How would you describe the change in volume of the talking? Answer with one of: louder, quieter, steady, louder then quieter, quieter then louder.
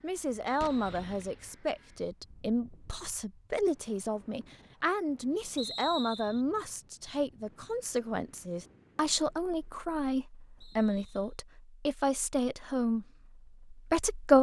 steady.